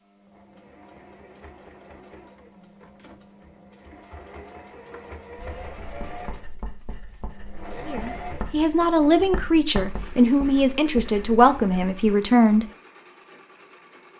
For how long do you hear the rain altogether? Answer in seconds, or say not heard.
not heard.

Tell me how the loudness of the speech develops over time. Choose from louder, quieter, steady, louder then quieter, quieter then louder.
steady.